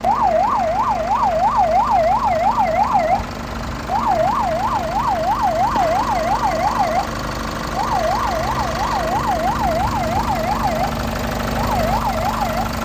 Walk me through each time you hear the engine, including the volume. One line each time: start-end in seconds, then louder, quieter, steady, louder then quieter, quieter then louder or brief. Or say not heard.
0.0-12.8 louder.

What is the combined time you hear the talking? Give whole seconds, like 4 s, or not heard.
not heard.